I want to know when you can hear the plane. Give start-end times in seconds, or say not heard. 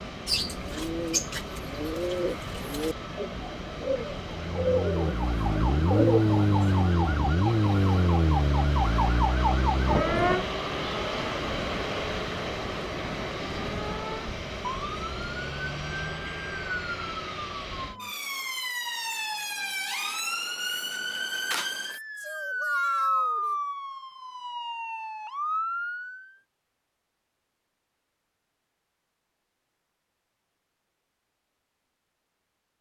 0.0-18.0.